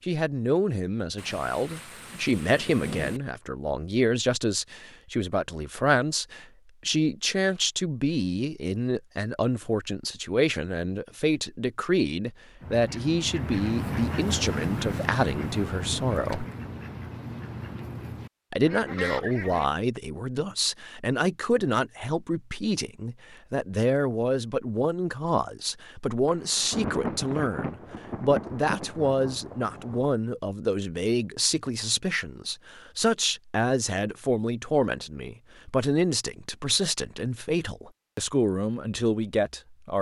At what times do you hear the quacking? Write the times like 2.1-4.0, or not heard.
12.6-19.7.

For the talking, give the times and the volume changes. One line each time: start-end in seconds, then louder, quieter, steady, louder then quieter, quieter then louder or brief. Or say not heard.
0.0-16.4 steady
18.5-39.9 steady.